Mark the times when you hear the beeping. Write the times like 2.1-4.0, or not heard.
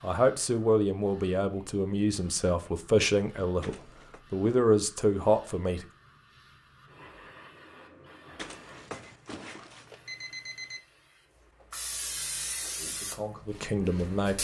3.6-4.2, 8.3-10.8.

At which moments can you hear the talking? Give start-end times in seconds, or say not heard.
0.0-5.8, 12.8-14.3.